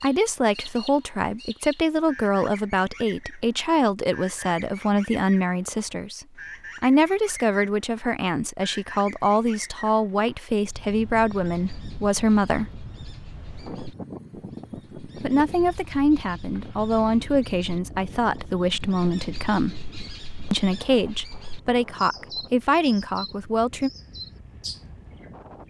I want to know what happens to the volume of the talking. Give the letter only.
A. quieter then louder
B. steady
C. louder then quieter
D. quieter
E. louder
B.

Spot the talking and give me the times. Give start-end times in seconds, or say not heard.
0.0-12.7, 15.2-19.8, 20.5-23.9.